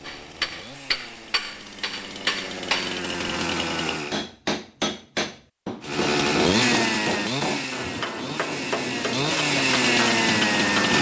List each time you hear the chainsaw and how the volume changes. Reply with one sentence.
The chainsaw can be heard from 0.0 to 4.2 s, getting louder; and from 5.8 to 10.9 s, getting quieter then louder.